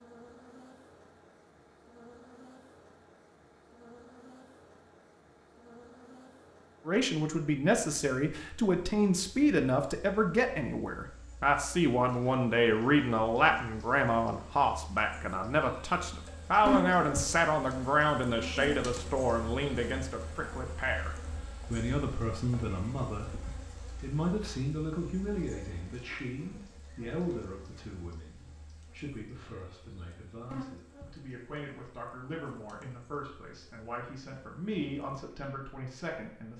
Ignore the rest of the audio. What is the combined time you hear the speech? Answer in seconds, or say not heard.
29 s.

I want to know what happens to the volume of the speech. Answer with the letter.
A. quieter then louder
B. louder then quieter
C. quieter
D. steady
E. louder
C.